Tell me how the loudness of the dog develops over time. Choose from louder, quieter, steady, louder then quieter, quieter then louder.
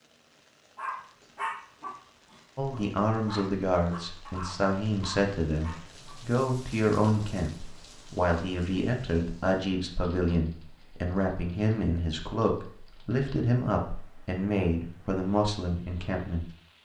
quieter then louder.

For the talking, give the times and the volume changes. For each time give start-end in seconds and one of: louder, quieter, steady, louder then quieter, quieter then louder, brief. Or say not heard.
2.5-16.8 steady.